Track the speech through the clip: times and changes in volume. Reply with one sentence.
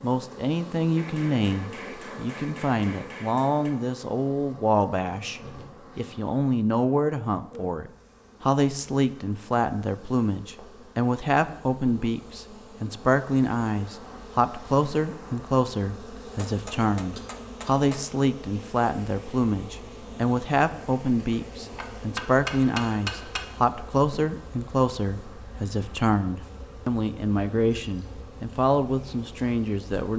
The speech can be heard from 0.0 to 30.1 s, at a steady volume.